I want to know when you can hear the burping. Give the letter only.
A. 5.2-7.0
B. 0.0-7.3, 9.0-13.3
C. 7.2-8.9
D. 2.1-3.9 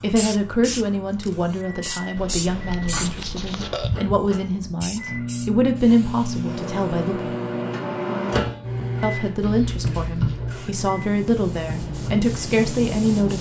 D.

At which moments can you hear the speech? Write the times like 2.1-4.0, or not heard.
0.0-7.3, 9.0-13.3.